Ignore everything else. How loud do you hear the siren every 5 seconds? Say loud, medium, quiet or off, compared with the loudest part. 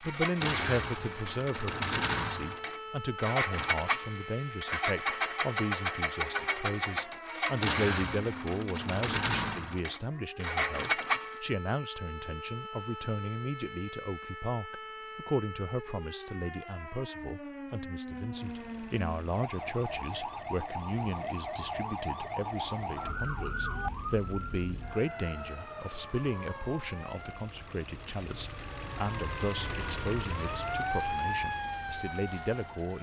medium, medium, medium, medium, loud, medium, loud.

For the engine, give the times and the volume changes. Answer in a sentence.
The engine can be heard from 0.0 to 11.4 s, at a steady volume; and from 18.1 to 32.9 s, getting louder.